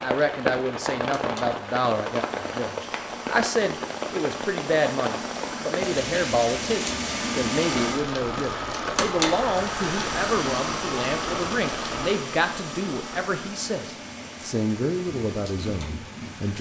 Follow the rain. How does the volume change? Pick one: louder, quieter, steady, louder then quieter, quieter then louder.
quieter.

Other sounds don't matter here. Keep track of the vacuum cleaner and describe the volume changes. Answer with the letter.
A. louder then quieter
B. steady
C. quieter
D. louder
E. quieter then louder
A.